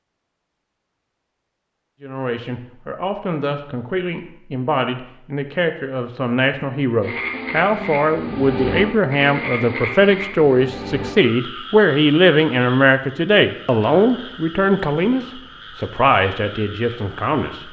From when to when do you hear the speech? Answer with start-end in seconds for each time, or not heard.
2.0-17.6.